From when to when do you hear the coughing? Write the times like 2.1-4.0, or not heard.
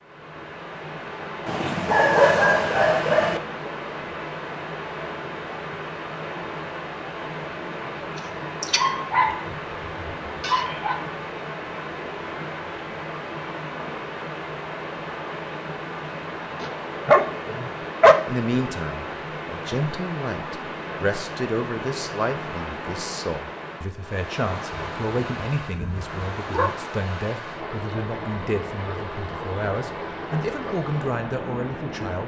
not heard.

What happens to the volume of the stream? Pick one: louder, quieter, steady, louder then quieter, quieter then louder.
steady.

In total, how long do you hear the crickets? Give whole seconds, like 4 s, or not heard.
not heard.